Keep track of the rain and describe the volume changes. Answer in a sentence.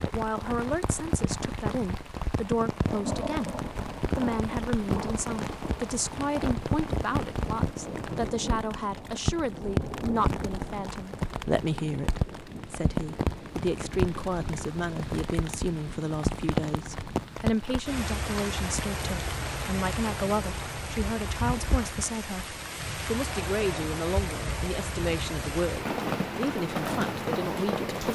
The loudness of the rain stays about the same.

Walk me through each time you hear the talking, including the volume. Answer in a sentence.
You can hear the talking from 0.0 to 28.0 s, at a steady volume.